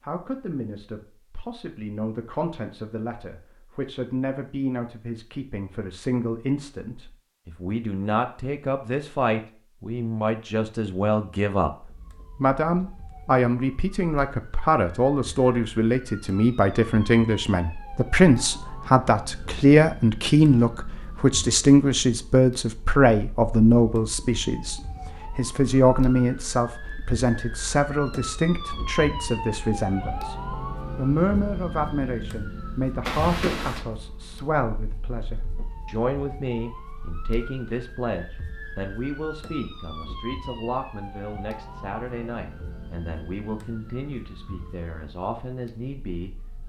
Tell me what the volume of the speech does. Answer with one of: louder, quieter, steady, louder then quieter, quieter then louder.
louder then quieter.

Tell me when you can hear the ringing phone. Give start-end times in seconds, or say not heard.
33.0-33.9.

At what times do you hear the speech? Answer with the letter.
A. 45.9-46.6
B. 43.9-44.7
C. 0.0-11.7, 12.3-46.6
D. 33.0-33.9
C.